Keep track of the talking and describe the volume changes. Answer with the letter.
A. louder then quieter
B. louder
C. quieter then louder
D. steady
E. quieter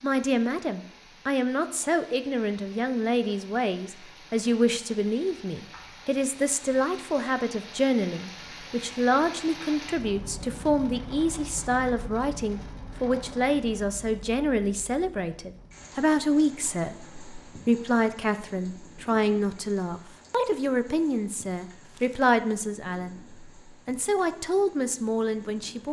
D.